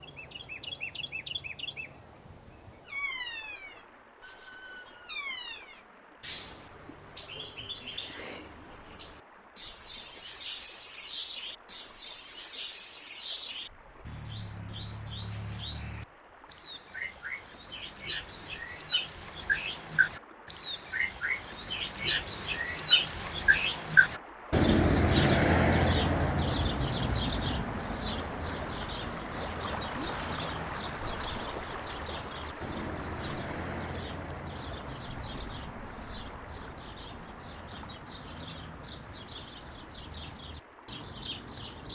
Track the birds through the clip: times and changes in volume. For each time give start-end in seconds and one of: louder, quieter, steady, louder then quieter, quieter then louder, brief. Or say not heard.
0.0-41.9 louder then quieter.